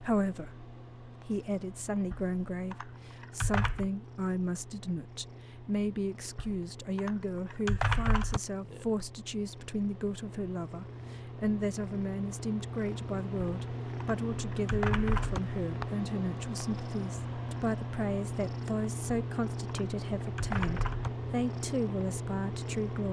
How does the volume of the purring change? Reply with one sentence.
The loudness of the purring goes up.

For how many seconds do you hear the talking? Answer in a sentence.
You can hear the talking for 23 seconds altogether.